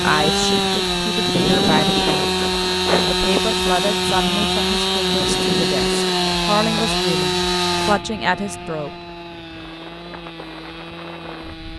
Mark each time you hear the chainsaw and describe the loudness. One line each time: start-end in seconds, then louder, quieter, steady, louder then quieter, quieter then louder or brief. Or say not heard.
0.0-11.7 quieter.